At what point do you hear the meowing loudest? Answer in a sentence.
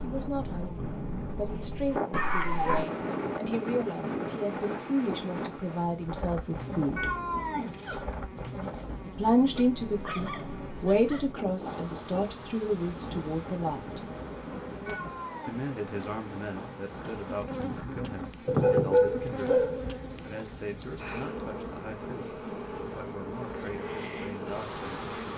The volume of the meowing peaks at 7 seconds.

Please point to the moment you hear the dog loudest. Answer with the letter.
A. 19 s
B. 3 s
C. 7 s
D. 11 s
A.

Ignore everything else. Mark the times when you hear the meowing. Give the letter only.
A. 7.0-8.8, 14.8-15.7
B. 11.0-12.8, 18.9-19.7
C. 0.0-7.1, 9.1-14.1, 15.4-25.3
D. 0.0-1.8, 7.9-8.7
A.